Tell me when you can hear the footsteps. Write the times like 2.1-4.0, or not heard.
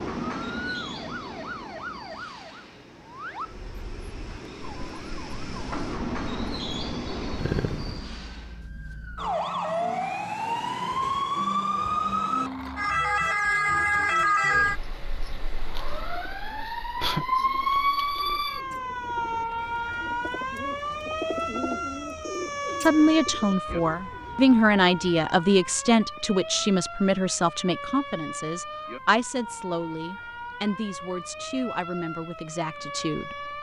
not heard.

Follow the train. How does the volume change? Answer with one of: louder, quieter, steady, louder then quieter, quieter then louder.
quieter then louder.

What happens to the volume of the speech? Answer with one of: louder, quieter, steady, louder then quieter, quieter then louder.
quieter.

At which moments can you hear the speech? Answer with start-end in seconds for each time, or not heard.
22.9-33.5.